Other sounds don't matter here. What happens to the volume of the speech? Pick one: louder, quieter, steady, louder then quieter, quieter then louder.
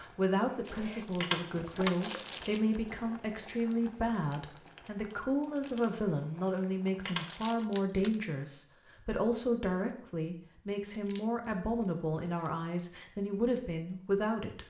steady.